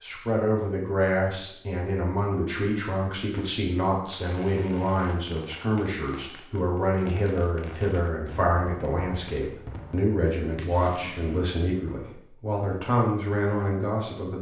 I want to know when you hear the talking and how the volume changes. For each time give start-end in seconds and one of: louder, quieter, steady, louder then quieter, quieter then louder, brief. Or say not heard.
0.0-14.3 steady.